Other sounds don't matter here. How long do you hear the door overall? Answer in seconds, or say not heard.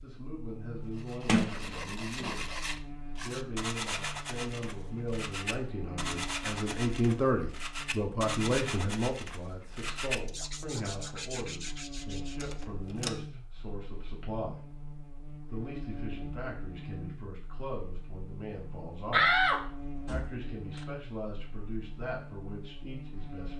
4 s.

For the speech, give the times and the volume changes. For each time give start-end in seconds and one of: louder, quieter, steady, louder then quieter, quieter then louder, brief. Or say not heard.
0.0-2.6 brief
3.2-23.5 quieter.